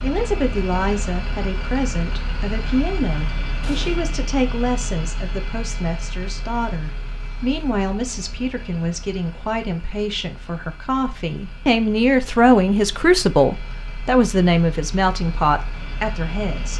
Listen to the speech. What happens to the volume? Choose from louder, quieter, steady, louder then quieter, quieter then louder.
louder.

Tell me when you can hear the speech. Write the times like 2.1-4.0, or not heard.
0.0-16.7.